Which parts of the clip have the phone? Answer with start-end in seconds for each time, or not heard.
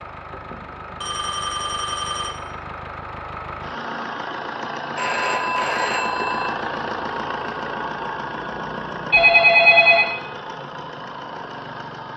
0.3-2.4, 5.0-6.5, 9.1-10.1.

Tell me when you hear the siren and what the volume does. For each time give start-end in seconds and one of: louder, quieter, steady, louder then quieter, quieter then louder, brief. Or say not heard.
not heard.